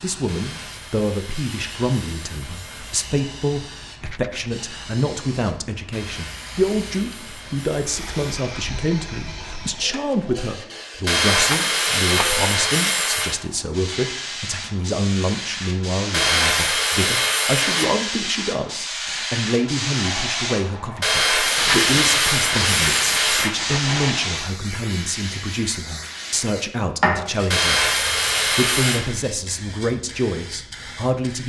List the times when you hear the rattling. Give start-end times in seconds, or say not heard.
3.9-4.5, 11.5-12.3, 21.6-24.2.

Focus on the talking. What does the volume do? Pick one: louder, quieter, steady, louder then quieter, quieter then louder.
steady.